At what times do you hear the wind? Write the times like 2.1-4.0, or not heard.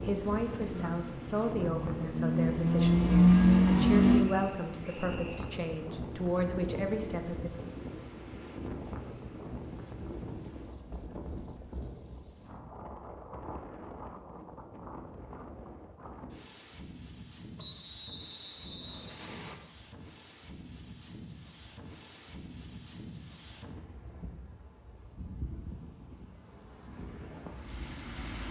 0.0-28.4.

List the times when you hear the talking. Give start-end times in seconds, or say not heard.
0.1-7.5.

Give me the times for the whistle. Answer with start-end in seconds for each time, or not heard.
4.2-5.5, 17.6-19.6.